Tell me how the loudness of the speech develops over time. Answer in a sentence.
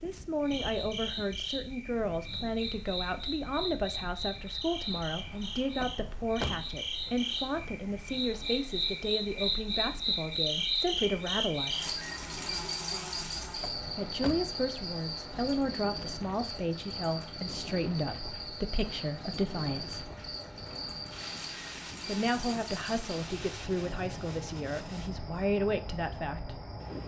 The loudness of the speech stays about the same.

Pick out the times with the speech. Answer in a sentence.
You can hear the speech from 0.0 to 11.9 s, from 13.9 to 20.1 s and from 22.1 to 26.6 s.